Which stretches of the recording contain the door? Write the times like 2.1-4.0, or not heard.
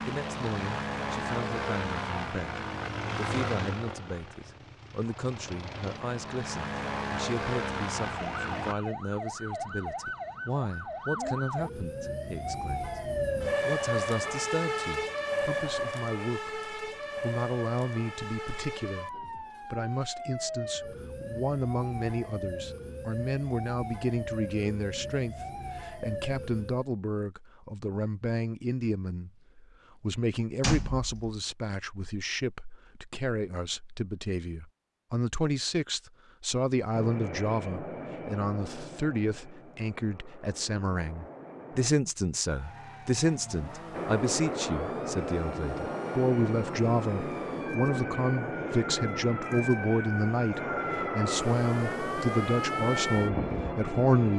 30.6-31.4.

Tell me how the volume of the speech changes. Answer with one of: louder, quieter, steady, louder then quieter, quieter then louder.
louder.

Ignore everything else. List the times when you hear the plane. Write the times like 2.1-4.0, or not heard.
0.0-8.8, 36.9-41.9, 43.9-54.3.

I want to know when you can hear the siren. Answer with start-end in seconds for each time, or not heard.
8.2-26.9, 42.5-54.3.